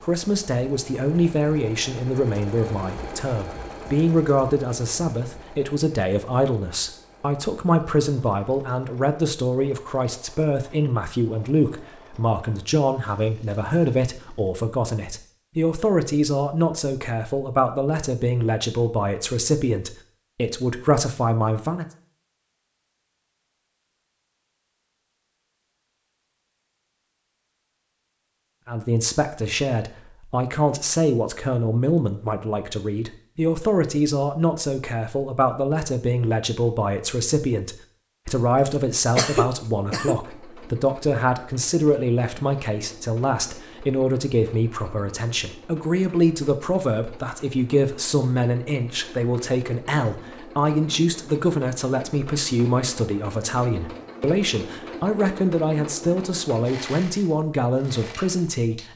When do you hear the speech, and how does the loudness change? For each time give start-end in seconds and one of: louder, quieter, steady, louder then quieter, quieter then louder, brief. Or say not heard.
0.0-21.9 steady
28.6-58.9 steady.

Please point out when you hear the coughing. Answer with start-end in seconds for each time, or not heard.
38.5-40.1.